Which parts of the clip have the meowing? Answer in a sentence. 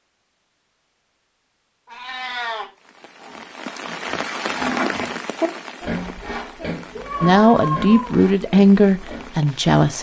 The meowing can be heard from 1.9 to 2.7 s and from 6.9 to 8.2 s.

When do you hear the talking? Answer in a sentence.
The talking can be heard from 7.2 to 9.9 s.